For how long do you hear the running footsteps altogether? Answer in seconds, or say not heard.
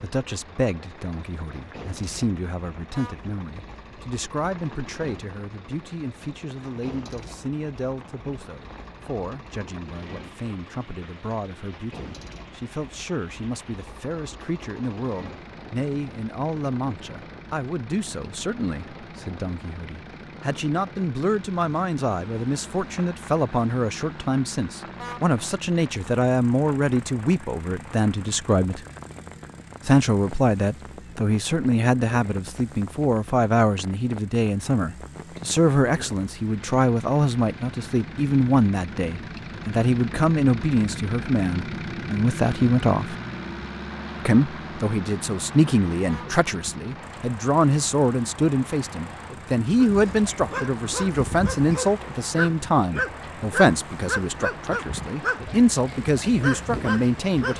not heard.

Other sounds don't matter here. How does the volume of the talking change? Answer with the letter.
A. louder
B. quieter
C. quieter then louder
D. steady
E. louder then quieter
A.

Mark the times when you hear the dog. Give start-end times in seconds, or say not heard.
49.8-57.5.